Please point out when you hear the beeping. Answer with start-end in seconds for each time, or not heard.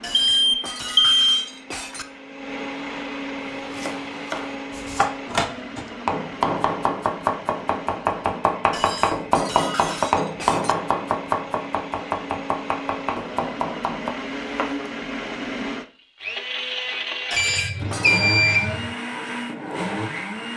0.2-1.2, 17.4-18.9.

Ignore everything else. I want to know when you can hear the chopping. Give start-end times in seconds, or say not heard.
3.4-14.9.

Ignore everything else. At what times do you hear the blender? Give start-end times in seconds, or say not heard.
0.0-20.5.